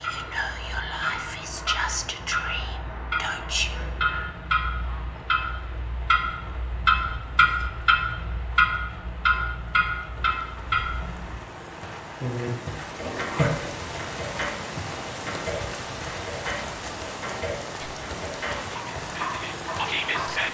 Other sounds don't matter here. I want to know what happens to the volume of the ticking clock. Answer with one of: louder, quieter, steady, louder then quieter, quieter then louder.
louder then quieter.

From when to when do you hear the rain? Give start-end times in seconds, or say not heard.
0.0-20.4.